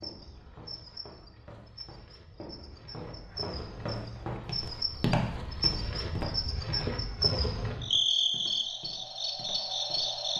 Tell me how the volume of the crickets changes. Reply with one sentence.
The loudness of the crickets goes up.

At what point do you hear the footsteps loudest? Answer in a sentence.
The loudest moment of the footsteps is at 5 seconds.